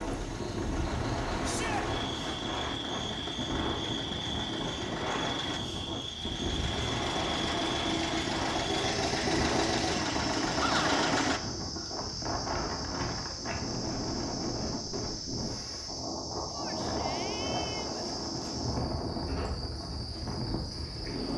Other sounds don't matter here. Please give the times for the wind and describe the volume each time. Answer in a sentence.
You can hear the wind from 0.0 to 21.3 s, at a steady volume.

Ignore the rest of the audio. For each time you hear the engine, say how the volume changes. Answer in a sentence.
You can hear the engine from 0.0 to 11.4 s, getting louder.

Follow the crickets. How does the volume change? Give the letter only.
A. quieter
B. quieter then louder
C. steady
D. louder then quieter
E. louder
C.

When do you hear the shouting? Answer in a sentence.
The shouting can be heard from 1.4 to 1.9 s, from 10.6 to 11.0 s and from 16.5 to 18.1 s.